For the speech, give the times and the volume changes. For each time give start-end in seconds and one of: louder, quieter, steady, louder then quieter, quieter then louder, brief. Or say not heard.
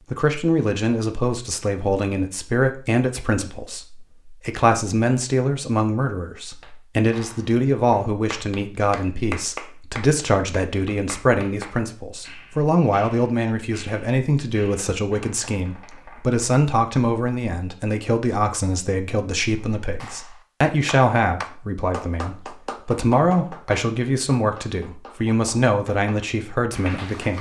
0.1-27.3 steady.